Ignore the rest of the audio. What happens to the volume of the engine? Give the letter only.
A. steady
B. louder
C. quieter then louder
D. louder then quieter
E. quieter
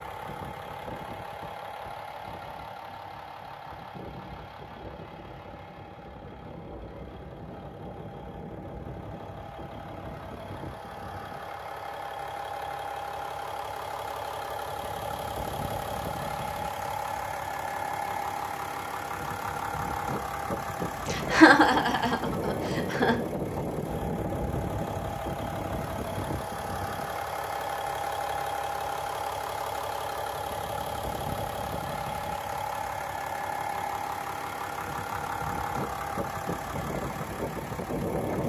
B.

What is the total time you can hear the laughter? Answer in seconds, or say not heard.
2 s.